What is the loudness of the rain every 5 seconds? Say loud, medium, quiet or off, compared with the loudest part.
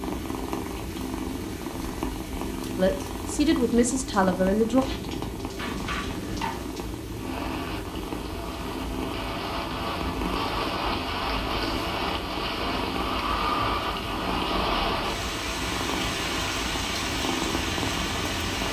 quiet, medium, loud, loud.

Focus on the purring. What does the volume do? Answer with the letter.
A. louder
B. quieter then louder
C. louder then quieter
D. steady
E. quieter
D.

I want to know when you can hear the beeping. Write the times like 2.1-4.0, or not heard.
5.5-6.7.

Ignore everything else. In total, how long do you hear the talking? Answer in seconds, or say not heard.
2 s.